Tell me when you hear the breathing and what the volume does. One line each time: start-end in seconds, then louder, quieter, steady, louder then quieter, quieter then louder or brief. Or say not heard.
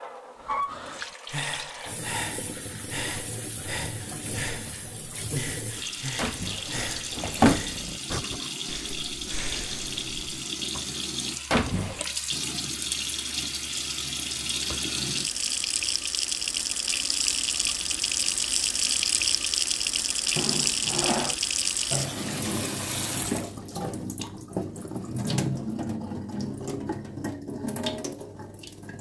0.3-10.2 steady.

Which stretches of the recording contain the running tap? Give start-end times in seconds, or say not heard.
0.0-28.9.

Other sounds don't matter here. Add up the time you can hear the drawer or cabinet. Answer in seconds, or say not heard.
3 s.